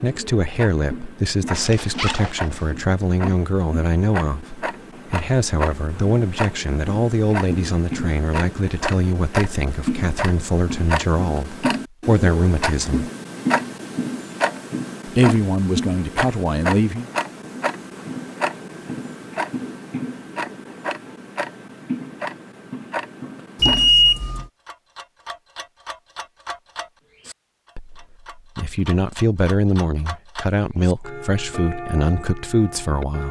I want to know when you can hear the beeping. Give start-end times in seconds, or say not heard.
23.6-24.4.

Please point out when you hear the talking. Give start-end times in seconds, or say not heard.
0.0-13.1, 15.1-17.1, 27.8-33.2.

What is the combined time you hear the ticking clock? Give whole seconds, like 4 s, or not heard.
33 s.